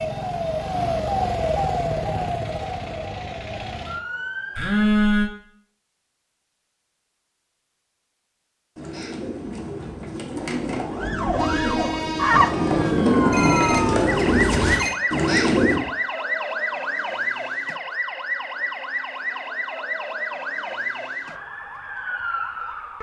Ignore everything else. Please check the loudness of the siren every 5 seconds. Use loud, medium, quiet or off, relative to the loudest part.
loud, off, loud, loud, medium.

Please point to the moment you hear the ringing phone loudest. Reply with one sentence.
The volume of the ringing phone peaks at 5 seconds.